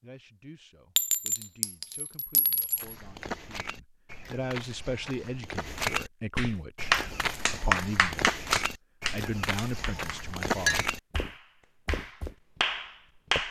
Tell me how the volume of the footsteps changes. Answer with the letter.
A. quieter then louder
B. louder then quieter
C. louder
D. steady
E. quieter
C.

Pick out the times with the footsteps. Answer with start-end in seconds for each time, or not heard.
2.8-12.3.